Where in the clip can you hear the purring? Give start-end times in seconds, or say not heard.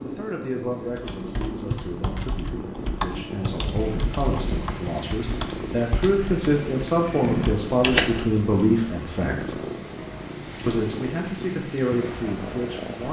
0.0-13.0.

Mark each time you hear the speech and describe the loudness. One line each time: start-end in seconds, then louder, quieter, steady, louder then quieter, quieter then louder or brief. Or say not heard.
0.0-9.6 louder
10.7-13.0 brief.